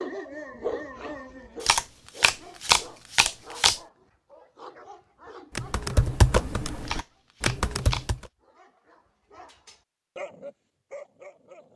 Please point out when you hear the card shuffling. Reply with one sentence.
You can hear the card shuffling from 1.6 to 3.8 s and from 6.8 to 8.1 s.